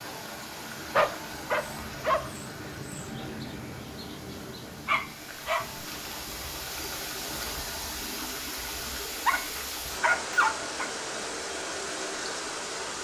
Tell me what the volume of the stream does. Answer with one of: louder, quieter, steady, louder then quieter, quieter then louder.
quieter then louder.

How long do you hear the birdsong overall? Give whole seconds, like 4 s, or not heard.
8 s.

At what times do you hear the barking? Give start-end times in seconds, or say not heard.
0.9-2.2, 4.8-5.7, 9.2-10.9.